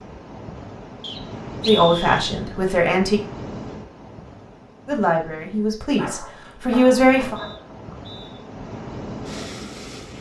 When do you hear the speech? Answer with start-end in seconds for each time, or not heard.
1.6-3.2, 4.8-7.3.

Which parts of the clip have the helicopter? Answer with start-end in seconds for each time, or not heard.
not heard.